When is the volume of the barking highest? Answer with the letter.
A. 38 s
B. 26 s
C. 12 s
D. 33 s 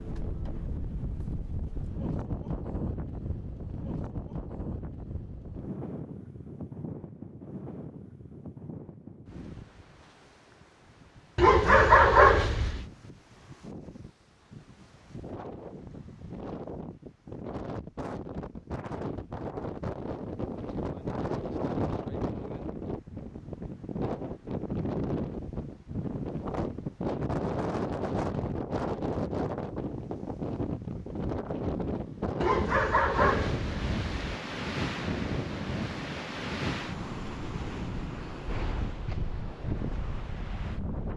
C.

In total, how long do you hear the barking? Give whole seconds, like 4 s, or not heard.
3 s.